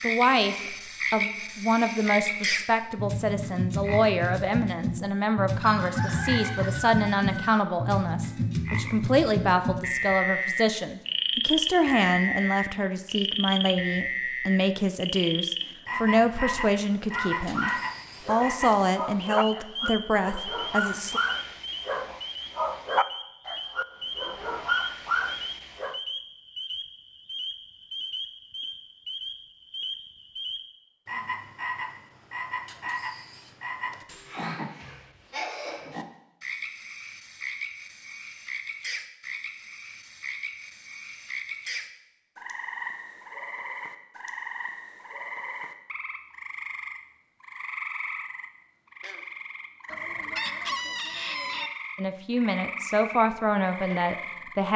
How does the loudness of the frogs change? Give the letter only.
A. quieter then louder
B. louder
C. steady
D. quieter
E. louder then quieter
D.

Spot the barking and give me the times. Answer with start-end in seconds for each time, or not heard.
17.1-26.0.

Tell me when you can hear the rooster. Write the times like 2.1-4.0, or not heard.
5.6-7.7, 49.9-51.7.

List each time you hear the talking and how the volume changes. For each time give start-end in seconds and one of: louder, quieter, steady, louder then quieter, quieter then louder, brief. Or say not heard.
0.0-21.2 steady
52.0-54.7 brief.